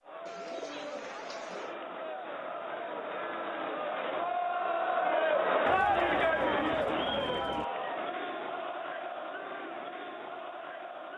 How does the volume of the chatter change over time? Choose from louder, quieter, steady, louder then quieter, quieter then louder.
louder then quieter.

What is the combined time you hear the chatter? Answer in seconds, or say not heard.
11 s.